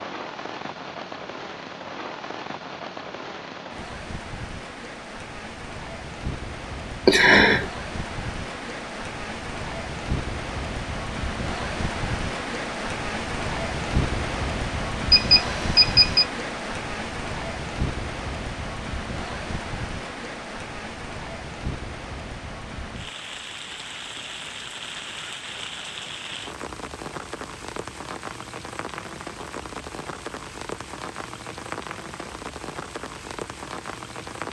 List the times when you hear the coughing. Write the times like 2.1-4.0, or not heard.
not heard.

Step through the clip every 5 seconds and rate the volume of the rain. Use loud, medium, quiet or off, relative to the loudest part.
medium, medium, loud, loud, medium, medium, medium.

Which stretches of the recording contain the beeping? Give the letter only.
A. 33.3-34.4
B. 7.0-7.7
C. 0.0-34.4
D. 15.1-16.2
D.